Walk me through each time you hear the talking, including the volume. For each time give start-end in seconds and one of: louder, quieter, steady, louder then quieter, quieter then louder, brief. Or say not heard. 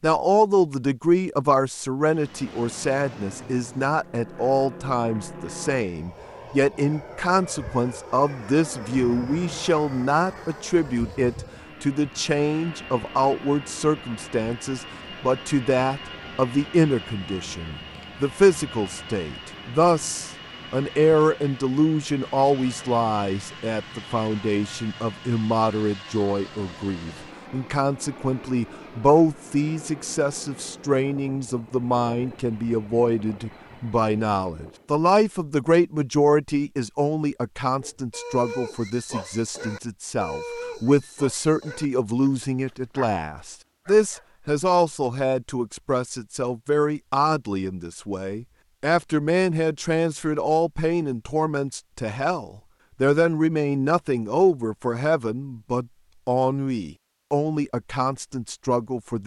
0.0-59.2 steady.